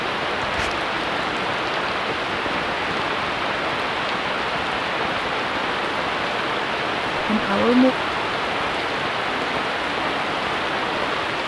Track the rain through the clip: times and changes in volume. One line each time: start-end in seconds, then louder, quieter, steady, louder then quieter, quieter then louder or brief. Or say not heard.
0.0-11.4 steady.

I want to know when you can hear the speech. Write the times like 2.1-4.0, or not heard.
7.2-8.0.